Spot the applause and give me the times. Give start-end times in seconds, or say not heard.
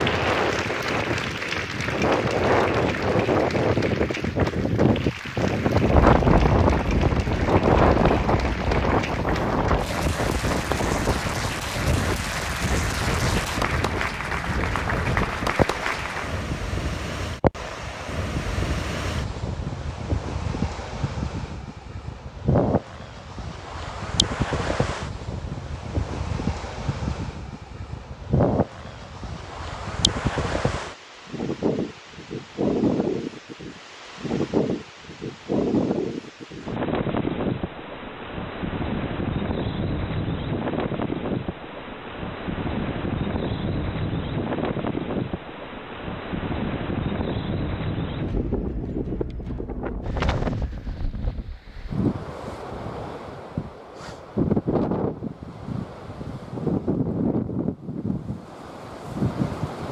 0.0-16.4.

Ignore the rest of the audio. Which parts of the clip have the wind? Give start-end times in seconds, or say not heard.
0.0-59.8.